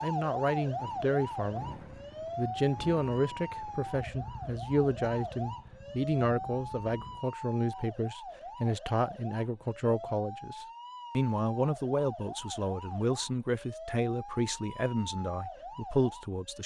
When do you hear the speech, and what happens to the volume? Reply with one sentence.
You can hear the speech briefly from 0.0 to 1.8 s; and from 2.4 to 16.6 s, at a steady volume.